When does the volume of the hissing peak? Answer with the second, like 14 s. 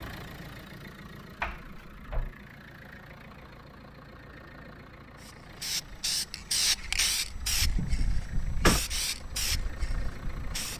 7 s.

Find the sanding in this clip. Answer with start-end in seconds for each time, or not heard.
not heard.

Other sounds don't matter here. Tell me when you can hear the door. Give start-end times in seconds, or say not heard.
1.4-2.4, 7.5-8.8.